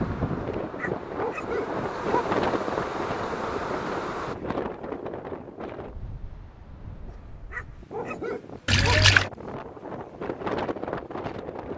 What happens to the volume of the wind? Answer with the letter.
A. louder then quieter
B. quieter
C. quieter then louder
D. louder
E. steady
C.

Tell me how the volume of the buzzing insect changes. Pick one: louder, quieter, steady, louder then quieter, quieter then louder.
louder.